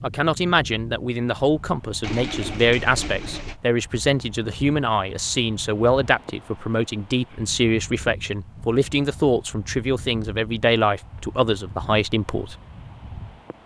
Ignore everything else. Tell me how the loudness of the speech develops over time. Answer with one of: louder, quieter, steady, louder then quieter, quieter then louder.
steady.